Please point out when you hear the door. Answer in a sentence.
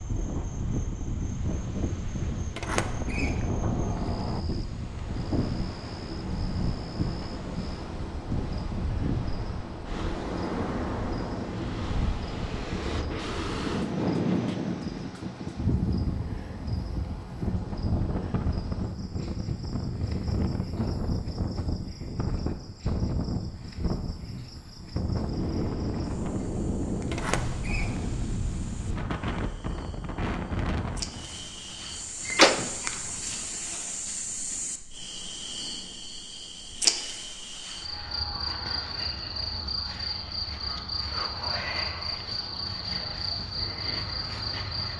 The door can be heard from 2.5 to 4.4 s, from 27.1 to 28.1 s and from 32.2 to 32.9 s.